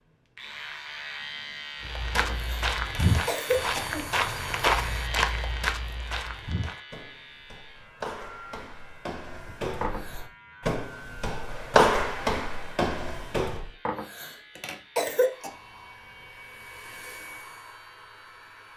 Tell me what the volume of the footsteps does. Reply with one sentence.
The volume of the footsteps goes down, then up.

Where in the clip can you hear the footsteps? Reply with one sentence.
The footsteps can be heard from 1.8 to 13.7 s.